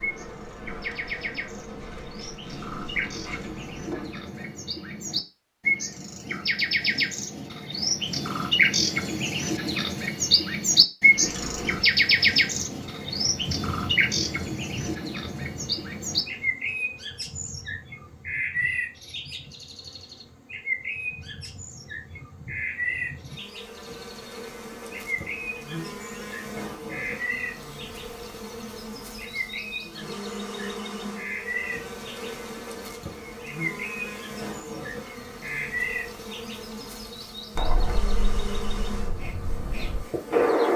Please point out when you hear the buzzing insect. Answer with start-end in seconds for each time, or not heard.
0.0-4.2, 11.1-40.7.